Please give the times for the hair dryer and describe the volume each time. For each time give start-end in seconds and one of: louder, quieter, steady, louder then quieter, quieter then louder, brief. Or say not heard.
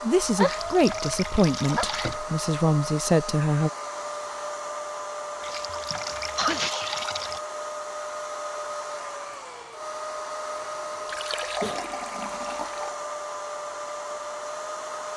0.0-15.1 steady.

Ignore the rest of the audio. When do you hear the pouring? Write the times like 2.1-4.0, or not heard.
0.3-2.1, 5.4-7.4, 11.1-12.9.